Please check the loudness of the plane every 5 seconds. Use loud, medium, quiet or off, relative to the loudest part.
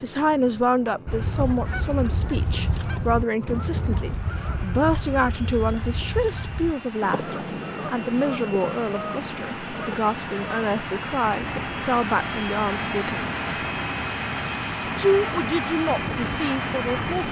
quiet, medium, loud, loud.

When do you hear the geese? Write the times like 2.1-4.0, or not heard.
1.1-11.7.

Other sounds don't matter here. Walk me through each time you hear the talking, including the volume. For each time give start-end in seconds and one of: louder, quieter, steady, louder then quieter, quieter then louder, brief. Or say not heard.
0.0-13.6 steady
14.9-17.2 brief.